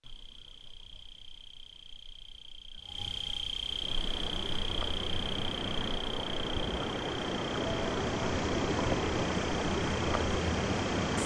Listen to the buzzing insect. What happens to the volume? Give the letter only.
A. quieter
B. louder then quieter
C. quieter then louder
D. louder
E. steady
B.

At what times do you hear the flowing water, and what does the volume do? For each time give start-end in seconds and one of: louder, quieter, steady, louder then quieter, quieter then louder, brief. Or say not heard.
3.6-11.2 louder.